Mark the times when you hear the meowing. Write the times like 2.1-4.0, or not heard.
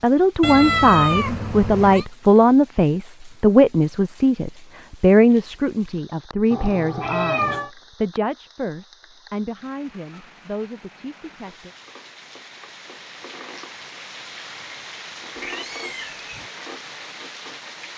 0.4-2.0, 6.5-7.7, 15.3-16.5.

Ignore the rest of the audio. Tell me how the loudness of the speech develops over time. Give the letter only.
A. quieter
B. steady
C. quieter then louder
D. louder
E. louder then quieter
A.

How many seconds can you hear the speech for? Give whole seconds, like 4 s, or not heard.
12 s.